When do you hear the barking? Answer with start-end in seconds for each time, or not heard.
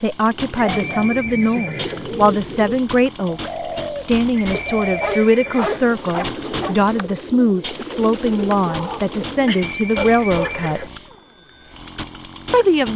0.7-1.8, 4.5-6.8, 8.7-10.7.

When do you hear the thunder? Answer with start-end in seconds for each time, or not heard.
not heard.